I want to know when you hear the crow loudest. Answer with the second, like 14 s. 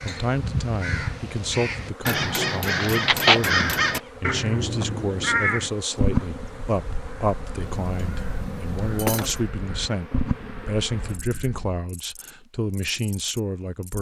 3 s.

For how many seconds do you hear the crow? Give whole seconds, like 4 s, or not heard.
12 s.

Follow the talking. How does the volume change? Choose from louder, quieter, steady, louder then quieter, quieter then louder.
steady.